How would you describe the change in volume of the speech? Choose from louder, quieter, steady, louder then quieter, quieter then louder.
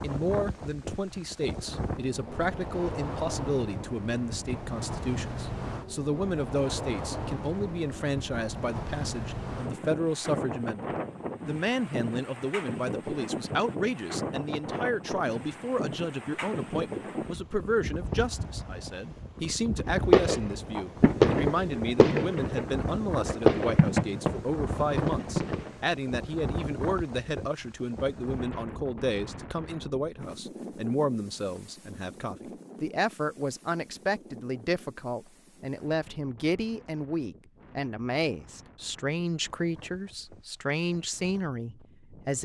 steady.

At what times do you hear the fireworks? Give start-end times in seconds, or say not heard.
19.9-25.9.